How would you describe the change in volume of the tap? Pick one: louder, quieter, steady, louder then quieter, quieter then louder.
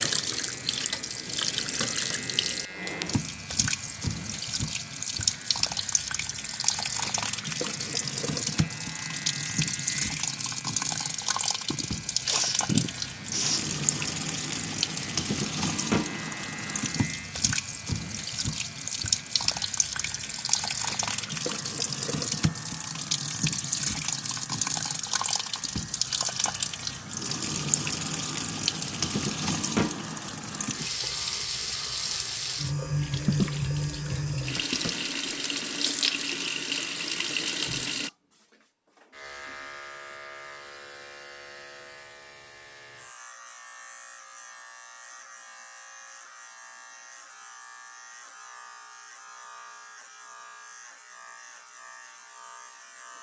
steady.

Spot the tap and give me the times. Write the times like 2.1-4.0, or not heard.
0.0-38.1.